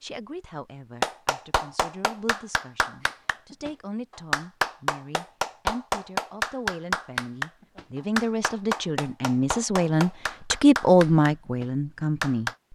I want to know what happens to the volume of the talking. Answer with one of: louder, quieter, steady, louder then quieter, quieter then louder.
louder.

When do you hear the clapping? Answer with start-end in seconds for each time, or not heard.
1.0-12.6.